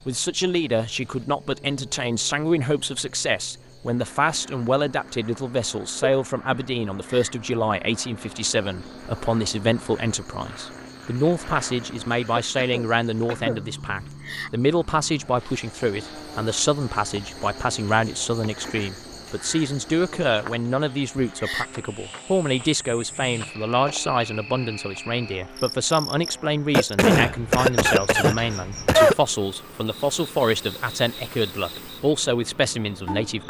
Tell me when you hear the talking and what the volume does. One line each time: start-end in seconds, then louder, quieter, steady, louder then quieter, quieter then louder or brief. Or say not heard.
0.1-33.4 steady.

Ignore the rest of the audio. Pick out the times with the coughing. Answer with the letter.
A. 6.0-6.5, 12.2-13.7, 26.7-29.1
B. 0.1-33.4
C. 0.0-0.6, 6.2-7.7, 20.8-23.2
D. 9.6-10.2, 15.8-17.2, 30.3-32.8
A.